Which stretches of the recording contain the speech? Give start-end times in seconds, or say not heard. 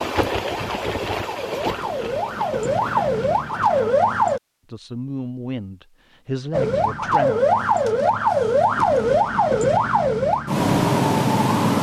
4.7-7.3.